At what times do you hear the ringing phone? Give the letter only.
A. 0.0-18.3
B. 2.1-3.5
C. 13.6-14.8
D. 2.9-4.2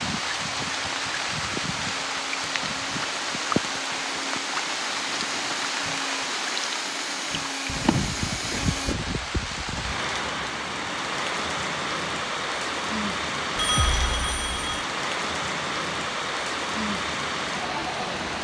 C.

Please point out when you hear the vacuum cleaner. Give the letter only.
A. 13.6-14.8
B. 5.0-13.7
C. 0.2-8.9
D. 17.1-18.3
C.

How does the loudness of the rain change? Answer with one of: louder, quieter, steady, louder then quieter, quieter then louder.
steady.